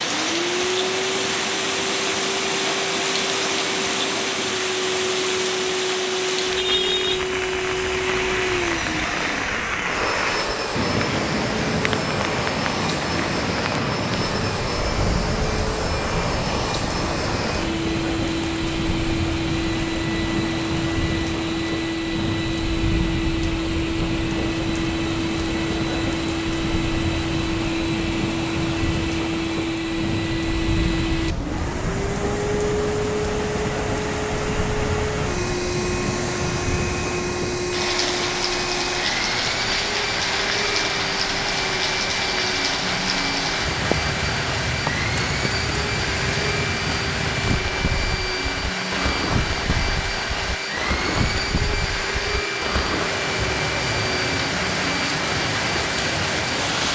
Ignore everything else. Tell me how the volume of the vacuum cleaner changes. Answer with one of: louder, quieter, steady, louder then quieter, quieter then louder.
steady.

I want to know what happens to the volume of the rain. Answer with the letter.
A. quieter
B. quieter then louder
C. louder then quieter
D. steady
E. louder
D.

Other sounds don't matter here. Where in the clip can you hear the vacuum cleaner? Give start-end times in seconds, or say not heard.
0.0-56.9.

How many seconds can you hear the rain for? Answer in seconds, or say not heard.
57 s.